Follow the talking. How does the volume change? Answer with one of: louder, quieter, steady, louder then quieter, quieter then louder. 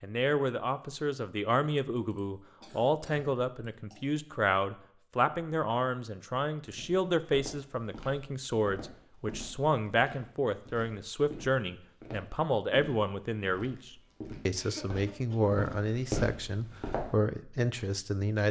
steady.